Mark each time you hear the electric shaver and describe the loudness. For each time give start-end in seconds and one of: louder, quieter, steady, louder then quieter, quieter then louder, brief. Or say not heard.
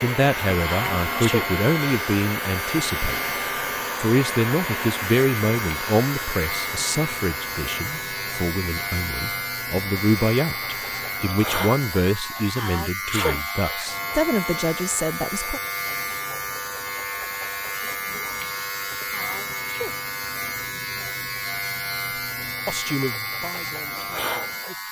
0.0-24.8 steady.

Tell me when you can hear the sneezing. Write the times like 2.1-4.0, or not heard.
0.6-1.4, 12.6-13.4, 19.1-19.9.